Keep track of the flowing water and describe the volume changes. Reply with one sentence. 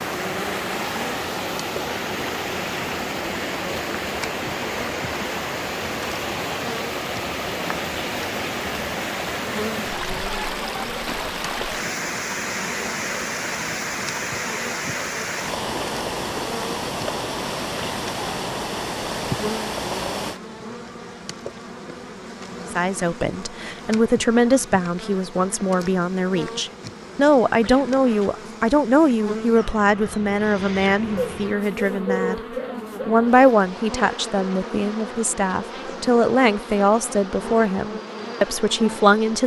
The volume of the flowing water stays about the same.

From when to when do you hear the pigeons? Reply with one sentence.
You can hear the pigeons from 31.1 to 33.5 s.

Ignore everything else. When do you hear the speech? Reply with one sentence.
You can hear the speech from 22.6 to 32.4 s and from 33.0 to 39.4 s.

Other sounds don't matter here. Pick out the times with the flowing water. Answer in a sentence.
You can hear the flowing water from 0.0 to 20.4 s.